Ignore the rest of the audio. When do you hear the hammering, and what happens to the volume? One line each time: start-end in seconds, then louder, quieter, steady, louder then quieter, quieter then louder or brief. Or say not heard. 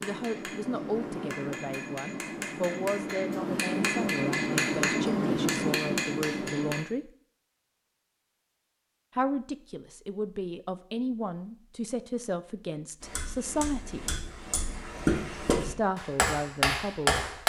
0.0-6.8 louder
13.0-17.4 louder.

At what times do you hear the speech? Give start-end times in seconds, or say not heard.
0.0-7.1, 9.2-14.1, 15.6-17.2.